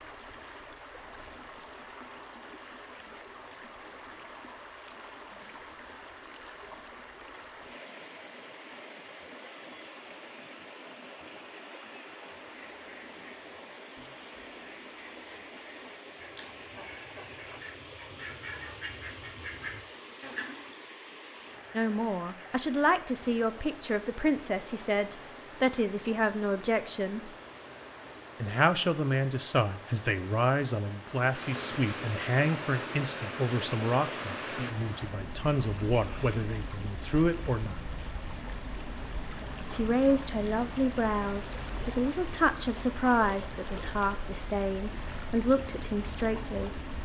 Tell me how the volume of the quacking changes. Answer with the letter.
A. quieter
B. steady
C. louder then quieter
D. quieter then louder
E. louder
E.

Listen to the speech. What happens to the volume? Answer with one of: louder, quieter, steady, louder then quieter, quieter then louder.
steady.